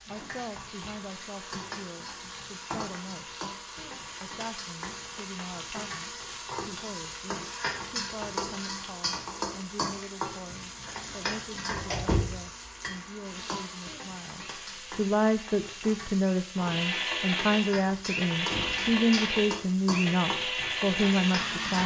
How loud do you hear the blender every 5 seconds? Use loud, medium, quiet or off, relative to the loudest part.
quiet, quiet, quiet, loud, loud.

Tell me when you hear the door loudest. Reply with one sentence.
The loudest moment of the door is at 12 seconds.